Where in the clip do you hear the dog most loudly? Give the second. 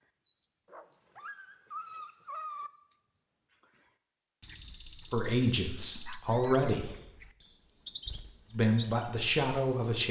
2 s.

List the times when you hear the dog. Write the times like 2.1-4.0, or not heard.
0.7-2.7, 5.9-6.7.